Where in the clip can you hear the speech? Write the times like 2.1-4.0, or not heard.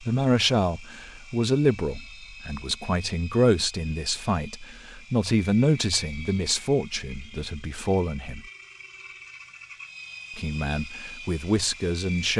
0.0-8.4, 10.3-12.3.